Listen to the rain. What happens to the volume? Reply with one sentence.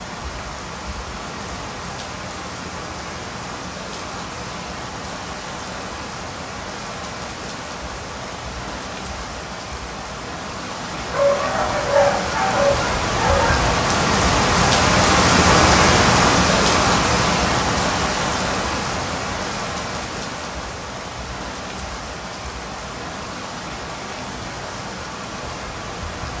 The volume of the rain goes up, then down.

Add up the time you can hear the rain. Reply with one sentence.
The rain can be heard for 26 seconds in total.